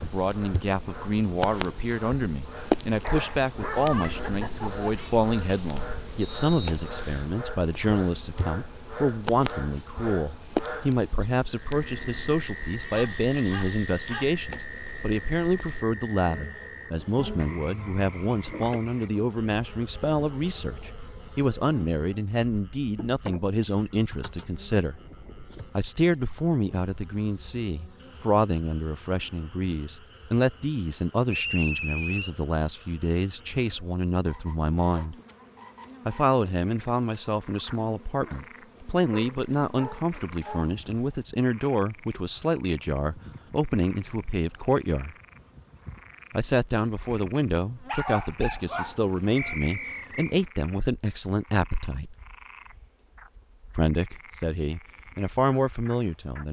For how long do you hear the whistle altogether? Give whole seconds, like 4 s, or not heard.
3 s.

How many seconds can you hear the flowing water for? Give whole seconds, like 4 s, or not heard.
not heard.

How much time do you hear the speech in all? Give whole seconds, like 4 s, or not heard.
52 s.